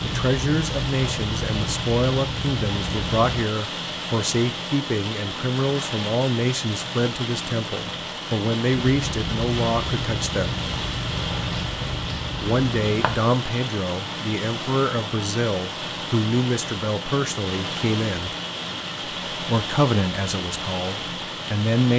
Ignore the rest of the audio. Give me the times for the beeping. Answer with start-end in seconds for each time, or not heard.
not heard.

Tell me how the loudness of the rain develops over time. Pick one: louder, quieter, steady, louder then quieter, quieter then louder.
steady.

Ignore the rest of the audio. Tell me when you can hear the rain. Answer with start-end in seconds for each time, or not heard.
0.0-21.9.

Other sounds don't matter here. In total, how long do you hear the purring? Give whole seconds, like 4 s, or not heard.
8 s.